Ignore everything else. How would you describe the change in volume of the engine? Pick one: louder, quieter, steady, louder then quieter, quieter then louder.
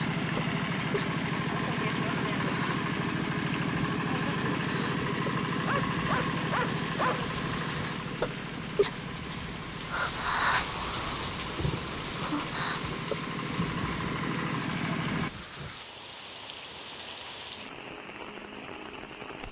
quieter then louder.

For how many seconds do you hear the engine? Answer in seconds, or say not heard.
15 s.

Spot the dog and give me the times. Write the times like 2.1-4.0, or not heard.
5.6-7.3.